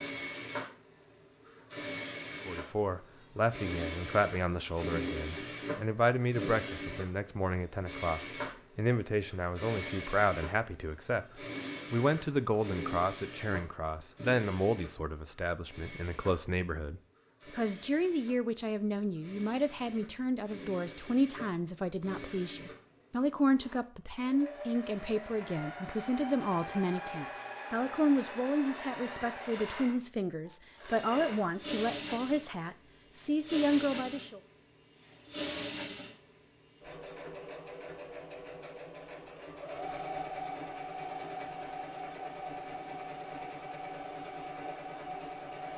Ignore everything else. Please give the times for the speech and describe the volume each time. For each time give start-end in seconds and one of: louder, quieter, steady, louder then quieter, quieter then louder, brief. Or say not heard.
2.5-34.4 steady.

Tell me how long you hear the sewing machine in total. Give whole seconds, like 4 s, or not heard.
46 s.